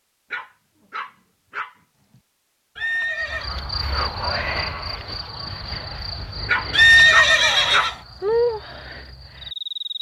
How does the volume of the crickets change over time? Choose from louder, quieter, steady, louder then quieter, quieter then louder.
quieter then louder.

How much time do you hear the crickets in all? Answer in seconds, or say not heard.
7 s.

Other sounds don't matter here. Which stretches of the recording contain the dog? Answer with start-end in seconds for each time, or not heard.
0.3-2.2, 6.5-8.3.